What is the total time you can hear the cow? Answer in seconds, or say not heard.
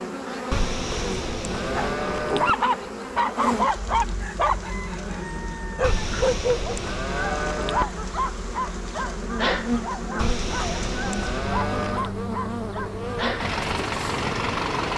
6 s.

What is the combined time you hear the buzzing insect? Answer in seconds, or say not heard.
15 s.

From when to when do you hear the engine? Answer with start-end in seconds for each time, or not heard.
13.2-14.9.